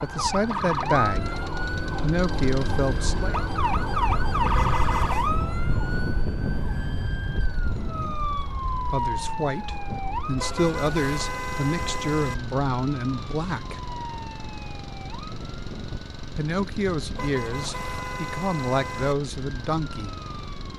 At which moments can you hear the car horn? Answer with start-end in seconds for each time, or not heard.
4.5-5.3, 10.3-12.3, 17.1-19.1.